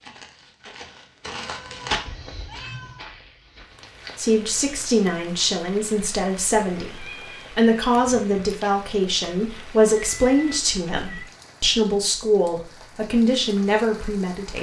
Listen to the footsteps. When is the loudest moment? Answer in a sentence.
The loudest moment of the footsteps is at 2 seconds.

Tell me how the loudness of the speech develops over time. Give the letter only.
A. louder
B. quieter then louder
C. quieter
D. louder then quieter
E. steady
E.